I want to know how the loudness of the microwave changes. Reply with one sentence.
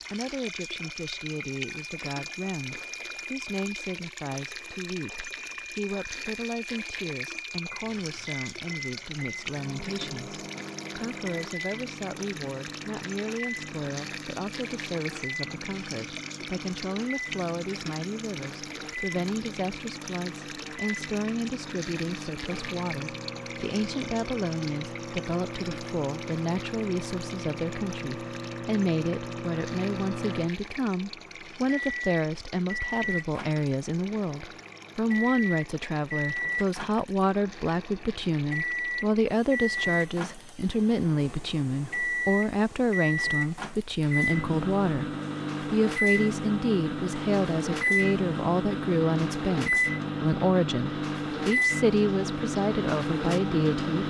The volume of the microwave goes up.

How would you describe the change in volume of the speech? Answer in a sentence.
The loudness of the speech goes up.